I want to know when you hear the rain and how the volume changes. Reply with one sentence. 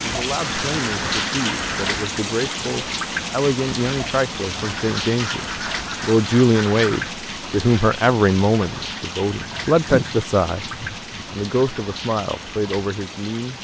The rain can be heard from 0.0 to 13.5 s, getting quieter.